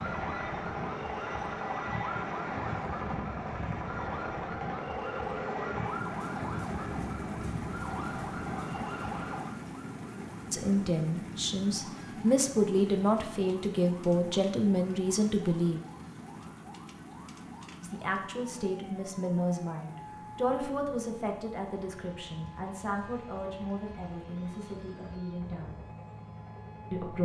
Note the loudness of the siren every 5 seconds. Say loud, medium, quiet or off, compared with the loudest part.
loud, loud, quiet, quiet, quiet, quiet.